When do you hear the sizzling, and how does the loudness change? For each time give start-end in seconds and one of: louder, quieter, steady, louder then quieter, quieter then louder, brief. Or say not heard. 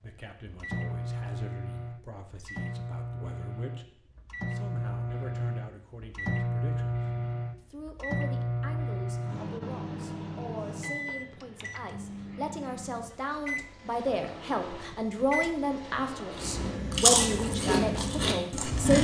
not heard.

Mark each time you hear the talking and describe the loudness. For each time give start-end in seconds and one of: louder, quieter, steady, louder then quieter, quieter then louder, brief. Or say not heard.
0.0-18.9 louder.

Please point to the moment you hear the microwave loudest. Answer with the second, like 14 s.
7 s.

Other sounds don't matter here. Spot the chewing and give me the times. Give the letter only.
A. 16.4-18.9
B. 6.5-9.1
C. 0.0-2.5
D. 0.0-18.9
A.